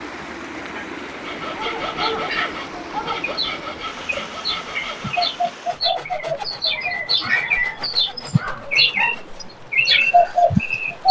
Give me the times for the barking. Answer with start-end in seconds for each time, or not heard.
1.6-3.2, 6.3-9.2.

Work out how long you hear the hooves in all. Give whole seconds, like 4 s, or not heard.
not heard.